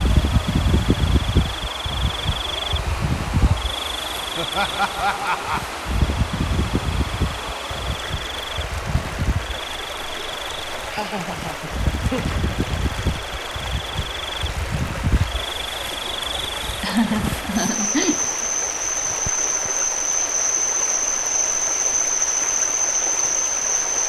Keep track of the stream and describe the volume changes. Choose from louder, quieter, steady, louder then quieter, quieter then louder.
steady.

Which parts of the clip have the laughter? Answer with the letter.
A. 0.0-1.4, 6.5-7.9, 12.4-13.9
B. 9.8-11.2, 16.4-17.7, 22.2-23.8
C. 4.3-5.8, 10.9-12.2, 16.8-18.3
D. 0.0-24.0
C.